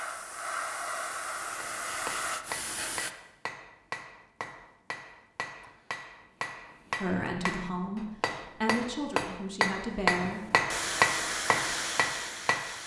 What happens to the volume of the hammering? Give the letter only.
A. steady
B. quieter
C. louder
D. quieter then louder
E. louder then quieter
C.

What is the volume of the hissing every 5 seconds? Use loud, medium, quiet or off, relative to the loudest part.
loud, off, loud.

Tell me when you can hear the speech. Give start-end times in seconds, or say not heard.
7.0-10.6.